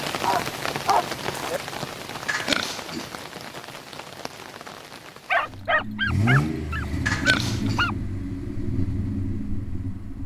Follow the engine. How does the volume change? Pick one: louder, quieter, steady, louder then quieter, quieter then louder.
quieter.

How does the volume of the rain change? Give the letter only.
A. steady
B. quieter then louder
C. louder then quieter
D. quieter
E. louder
D.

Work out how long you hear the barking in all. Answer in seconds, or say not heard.
4 s.